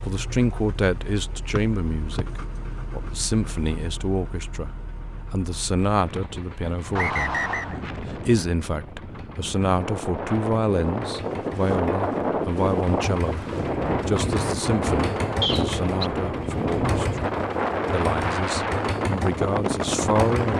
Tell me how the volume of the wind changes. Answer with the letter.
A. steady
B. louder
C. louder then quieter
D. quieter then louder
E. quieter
B.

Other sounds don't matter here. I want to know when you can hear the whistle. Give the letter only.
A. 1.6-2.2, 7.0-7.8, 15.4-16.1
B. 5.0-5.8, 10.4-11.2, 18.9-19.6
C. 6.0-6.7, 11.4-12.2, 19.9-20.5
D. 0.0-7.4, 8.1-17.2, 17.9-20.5
A.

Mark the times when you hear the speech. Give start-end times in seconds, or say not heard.
0.0-7.4, 8.1-17.2, 17.9-20.5.